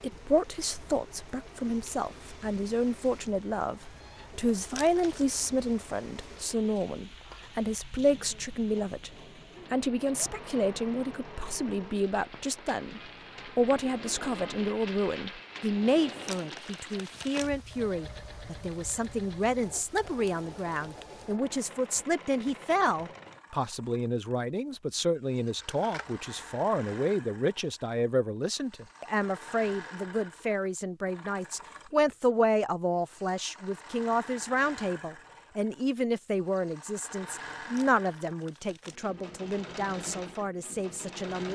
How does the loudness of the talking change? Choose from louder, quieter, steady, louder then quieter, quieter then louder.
steady.